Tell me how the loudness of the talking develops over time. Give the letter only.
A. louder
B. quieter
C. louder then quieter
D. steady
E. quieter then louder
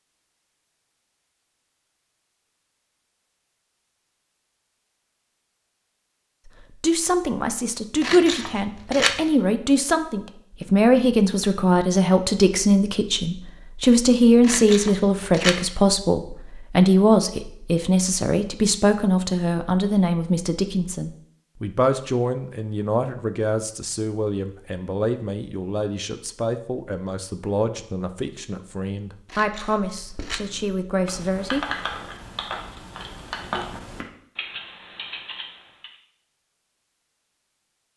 B.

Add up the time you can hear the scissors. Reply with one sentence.
The scissors can be heard for 4 seconds in total.